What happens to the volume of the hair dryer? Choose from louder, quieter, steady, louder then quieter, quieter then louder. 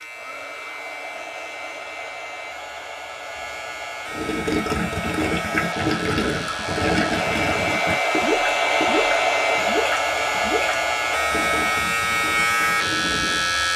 louder then quieter.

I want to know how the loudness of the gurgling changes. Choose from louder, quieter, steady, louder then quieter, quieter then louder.
quieter.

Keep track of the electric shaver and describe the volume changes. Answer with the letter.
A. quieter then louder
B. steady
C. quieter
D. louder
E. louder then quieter
D.